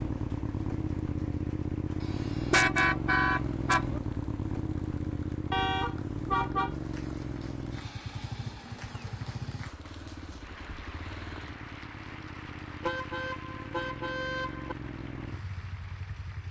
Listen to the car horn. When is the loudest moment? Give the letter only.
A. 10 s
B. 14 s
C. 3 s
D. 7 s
C.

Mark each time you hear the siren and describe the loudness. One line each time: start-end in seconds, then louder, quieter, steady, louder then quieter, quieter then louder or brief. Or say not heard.
not heard.